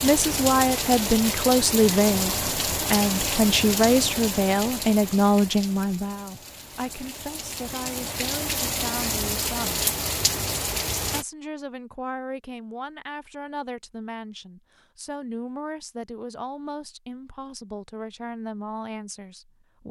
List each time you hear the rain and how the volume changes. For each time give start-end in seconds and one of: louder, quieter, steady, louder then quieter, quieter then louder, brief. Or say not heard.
0.0-11.2 quieter then louder.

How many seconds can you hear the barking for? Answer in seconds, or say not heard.
not heard.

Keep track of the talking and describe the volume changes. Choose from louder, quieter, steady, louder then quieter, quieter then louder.
quieter.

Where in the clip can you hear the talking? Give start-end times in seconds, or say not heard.
0.0-9.8, 11.1-19.8.